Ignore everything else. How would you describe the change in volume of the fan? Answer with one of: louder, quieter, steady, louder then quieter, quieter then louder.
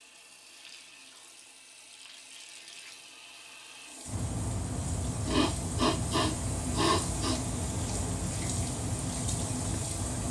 steady.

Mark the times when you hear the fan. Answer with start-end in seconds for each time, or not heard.
4.0-10.2.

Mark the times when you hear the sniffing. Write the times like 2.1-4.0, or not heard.
5.2-7.4.